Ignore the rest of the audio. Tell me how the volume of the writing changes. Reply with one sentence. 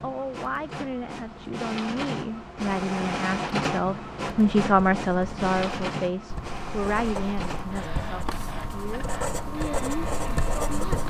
The volume of the writing goes up.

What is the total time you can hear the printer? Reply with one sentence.
You can hear the printer for 11 seconds altogether.